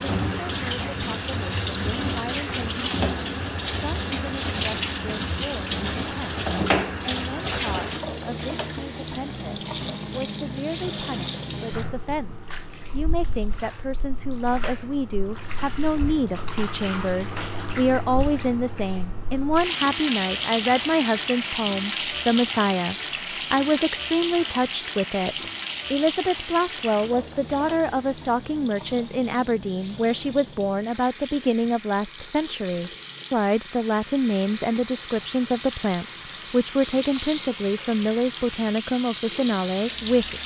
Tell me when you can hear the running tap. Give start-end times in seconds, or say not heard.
0.0-40.4.